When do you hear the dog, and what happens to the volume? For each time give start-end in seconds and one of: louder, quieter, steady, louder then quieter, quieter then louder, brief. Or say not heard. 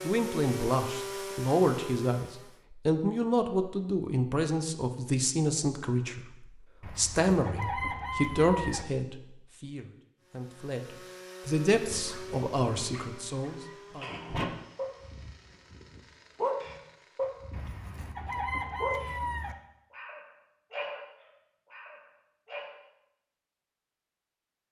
11.8-22.8 louder then quieter.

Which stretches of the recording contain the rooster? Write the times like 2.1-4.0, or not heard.
6.8-8.8, 17.5-19.6.